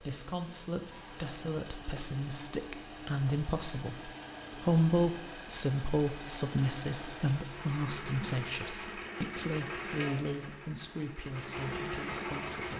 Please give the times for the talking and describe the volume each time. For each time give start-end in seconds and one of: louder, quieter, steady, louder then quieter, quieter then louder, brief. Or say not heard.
0.0-12.7 louder then quieter.